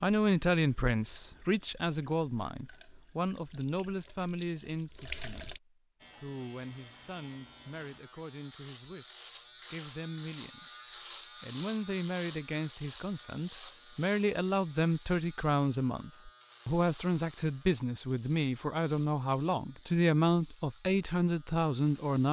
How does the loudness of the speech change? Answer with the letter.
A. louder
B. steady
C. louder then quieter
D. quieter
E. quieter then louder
E.